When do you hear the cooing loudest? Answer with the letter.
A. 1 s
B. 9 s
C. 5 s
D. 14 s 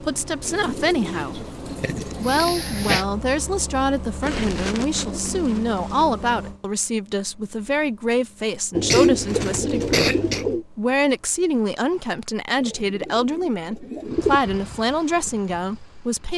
B.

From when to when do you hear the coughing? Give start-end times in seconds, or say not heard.
2.2-3.0, 8.9-10.4.